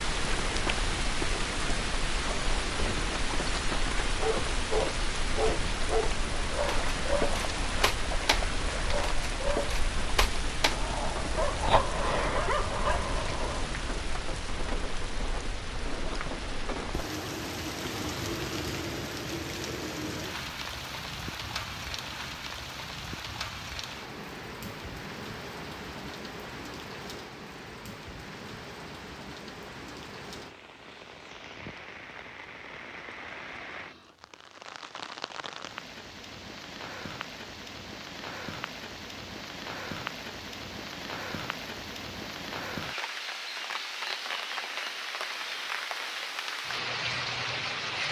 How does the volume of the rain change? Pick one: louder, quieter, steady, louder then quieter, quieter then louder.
quieter then louder.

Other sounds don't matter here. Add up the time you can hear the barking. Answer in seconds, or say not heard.
9 s.